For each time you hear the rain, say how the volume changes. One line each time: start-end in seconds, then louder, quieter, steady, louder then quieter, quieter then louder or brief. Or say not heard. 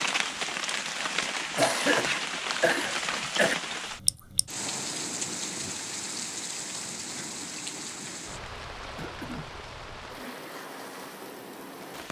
0.0-12.0 quieter.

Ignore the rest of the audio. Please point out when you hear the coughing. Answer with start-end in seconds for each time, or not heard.
1.6-3.5, 8.9-9.6.